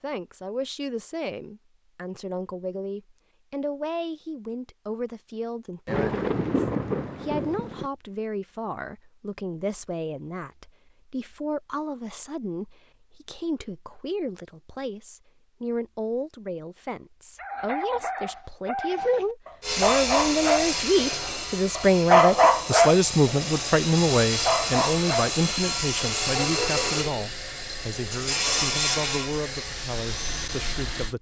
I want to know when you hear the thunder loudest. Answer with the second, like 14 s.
7 s.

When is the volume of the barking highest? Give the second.
22 s.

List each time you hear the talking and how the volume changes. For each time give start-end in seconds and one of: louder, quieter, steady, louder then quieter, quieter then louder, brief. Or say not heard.
0.0-31.1 louder then quieter.